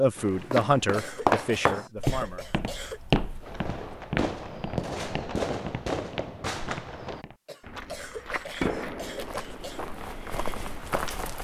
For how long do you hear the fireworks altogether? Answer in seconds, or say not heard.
8 s.